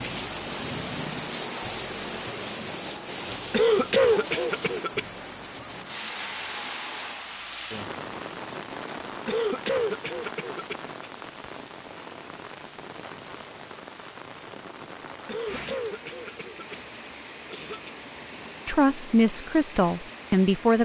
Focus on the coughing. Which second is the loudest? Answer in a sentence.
The volume of the coughing peaks at 4 seconds.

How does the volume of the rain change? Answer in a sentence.
The volume of the rain goes down.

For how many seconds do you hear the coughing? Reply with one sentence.
The coughing can be heard for 6 seconds in total.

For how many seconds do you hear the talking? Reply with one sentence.
You can hear the talking for 2 seconds altogether.